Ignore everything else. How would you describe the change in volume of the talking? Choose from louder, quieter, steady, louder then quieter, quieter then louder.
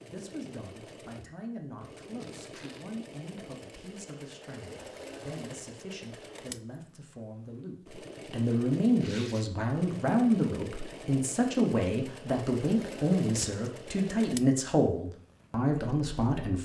louder.